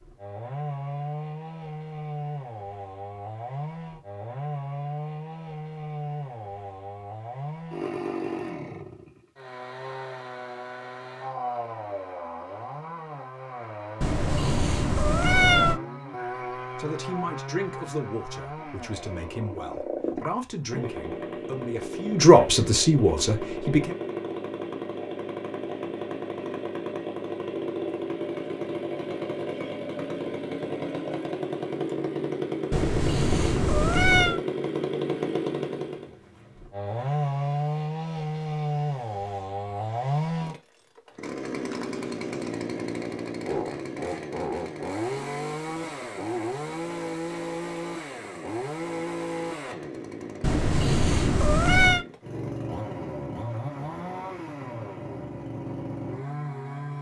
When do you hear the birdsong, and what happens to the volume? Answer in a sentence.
You can't hear the birdsong here.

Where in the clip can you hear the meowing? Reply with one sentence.
You can hear the meowing from 14.0 to 15.8 s, from 32.7 to 34.4 s and from 50.4 to 52.0 s.